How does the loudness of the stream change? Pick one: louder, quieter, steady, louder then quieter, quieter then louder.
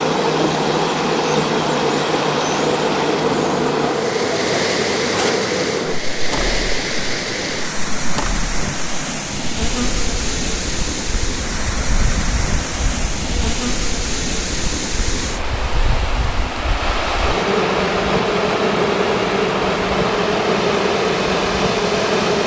steady.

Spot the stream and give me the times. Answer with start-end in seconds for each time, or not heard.
0.0-22.4.